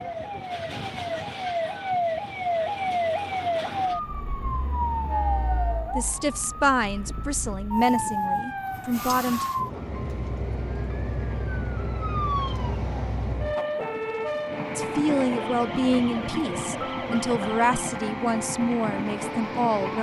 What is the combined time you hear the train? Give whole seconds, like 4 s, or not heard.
20 s.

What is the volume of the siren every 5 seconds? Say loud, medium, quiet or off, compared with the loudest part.
loud, loud, loud, medium.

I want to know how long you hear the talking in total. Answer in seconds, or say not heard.
9 s.